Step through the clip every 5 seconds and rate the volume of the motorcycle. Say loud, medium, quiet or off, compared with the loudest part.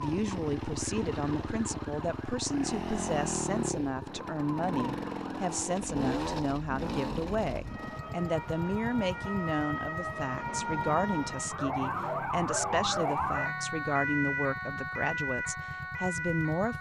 loud, loud, medium, medium.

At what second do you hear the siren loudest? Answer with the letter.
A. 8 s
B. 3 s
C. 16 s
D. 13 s
D.